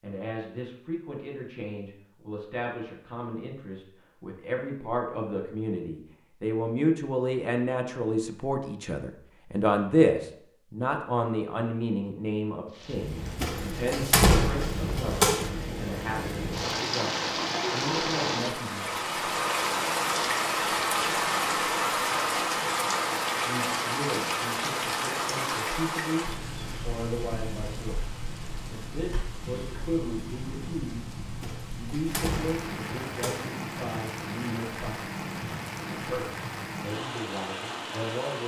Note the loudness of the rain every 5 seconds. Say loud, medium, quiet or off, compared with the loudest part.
off, off, medium, loud, loud, medium, medium, medium.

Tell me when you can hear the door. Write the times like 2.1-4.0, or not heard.
13.4-15.5, 31.4-33.5.